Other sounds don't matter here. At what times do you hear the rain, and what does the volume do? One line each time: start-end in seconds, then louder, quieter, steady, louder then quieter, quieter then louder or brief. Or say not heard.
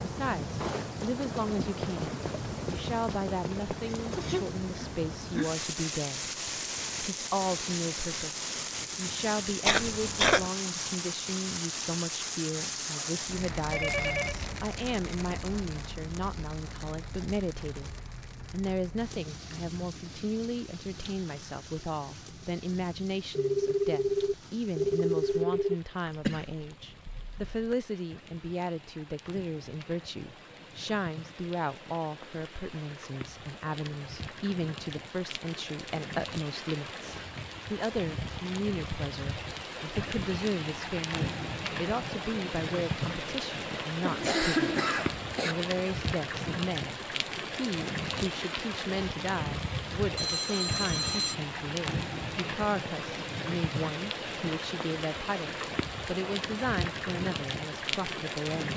0.0-58.7 quieter then louder.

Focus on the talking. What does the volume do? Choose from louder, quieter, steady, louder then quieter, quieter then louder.
steady.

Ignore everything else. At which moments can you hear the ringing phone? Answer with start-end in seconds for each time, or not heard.
13.6-14.4, 23.4-25.8, 50.1-51.4.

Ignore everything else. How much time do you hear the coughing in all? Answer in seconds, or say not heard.
4 s.